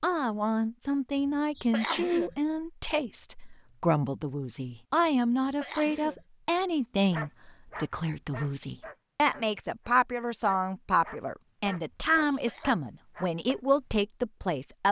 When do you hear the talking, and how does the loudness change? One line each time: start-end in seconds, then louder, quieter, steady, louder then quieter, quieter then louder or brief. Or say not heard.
0.0-14.8 steady.